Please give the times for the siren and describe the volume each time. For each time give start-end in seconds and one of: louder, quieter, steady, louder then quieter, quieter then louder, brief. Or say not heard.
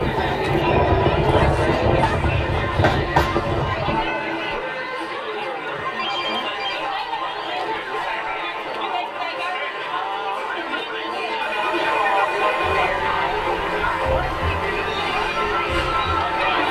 0.0-2.0 brief
12.6-16.6 steady.